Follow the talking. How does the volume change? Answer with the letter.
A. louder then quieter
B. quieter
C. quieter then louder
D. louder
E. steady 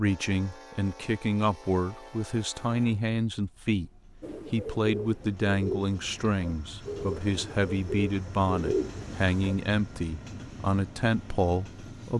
E.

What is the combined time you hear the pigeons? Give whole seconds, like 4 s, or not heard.
5 s.